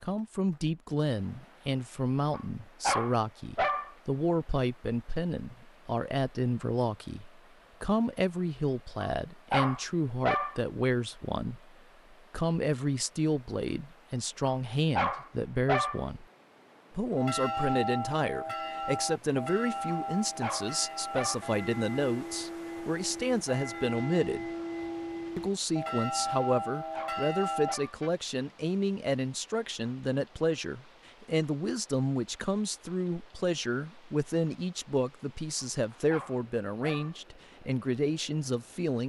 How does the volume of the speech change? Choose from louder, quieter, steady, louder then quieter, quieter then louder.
steady.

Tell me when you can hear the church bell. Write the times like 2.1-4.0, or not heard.
17.1-28.1.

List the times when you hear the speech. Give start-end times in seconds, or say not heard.
0.0-16.2, 16.9-24.4, 25.4-39.0.